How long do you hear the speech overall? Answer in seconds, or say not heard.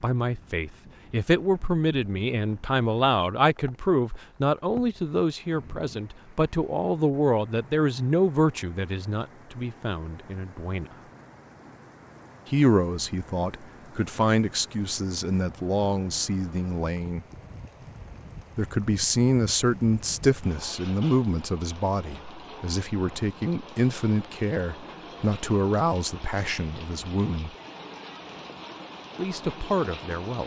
26 s.